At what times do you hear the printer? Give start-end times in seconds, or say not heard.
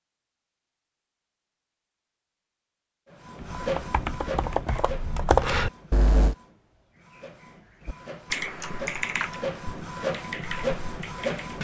3.1-11.6.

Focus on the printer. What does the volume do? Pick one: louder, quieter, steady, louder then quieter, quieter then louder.
quieter then louder.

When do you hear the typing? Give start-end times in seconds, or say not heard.
3.4-6.3, 7.8-11.6.